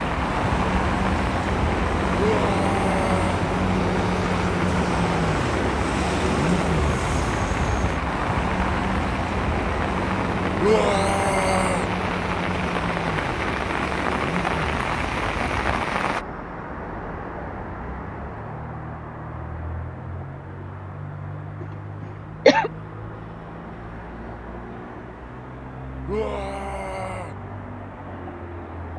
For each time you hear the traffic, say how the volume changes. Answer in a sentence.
You can hear the traffic from 0.0 to 28.9 s, getting quieter.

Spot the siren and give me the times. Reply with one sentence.
The siren can't be heard in this clip.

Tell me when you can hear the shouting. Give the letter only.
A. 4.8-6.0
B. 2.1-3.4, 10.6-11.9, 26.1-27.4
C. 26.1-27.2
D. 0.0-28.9
B.